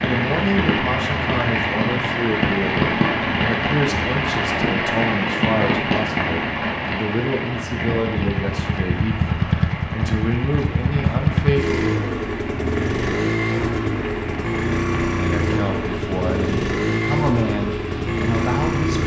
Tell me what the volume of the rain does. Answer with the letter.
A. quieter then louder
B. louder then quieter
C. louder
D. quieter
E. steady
D.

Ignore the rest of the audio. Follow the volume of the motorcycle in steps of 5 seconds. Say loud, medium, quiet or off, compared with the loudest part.
off, loud, loud, loud.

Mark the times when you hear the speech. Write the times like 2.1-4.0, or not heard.
0.0-11.8, 15.2-19.0.